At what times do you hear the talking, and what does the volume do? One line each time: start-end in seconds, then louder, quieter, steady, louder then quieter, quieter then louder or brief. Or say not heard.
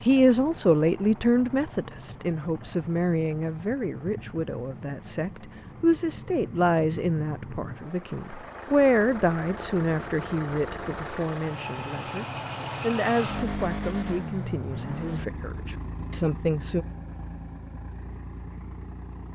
0.1-16.9 quieter.